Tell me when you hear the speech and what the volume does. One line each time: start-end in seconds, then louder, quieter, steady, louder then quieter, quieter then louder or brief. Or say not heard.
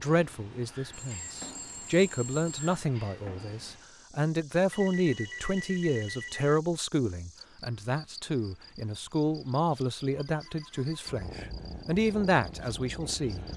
0.0-13.4 steady.